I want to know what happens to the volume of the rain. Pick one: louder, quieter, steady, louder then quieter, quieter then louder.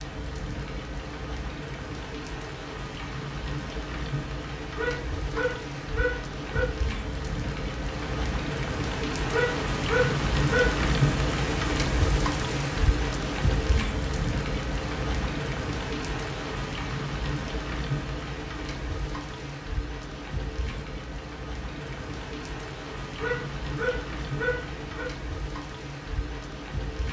louder then quieter.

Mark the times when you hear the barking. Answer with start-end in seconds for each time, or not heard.
4.8-6.7, 9.3-10.8, 23.1-25.1.